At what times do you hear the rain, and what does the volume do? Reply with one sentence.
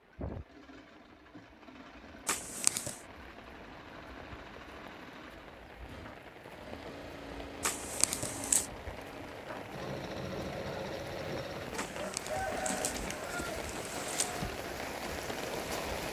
The rain can be heard from 0.0 to 16.0 s, getting louder.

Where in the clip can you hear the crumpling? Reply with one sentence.
The crumpling can be heard from 2.2 to 3.0 s, from 7.6 to 8.7 s and from 11.8 to 14.4 s.